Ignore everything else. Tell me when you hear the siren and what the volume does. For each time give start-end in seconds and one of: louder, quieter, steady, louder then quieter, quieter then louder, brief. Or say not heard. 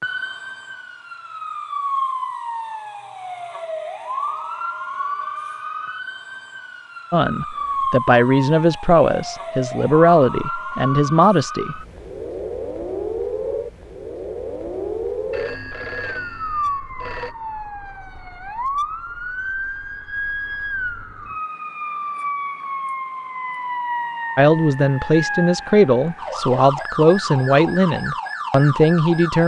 0.0-29.4 steady.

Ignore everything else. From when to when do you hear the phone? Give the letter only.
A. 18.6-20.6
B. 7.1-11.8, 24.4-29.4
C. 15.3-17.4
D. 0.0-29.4
C.